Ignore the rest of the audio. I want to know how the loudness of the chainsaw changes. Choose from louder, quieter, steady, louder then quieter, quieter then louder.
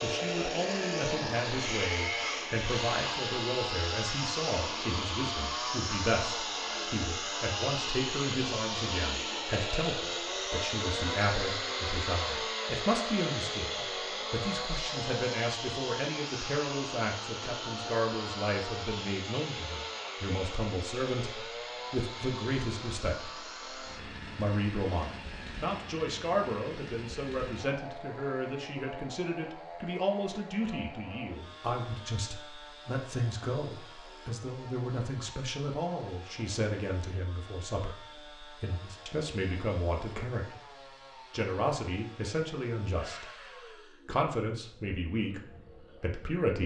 quieter.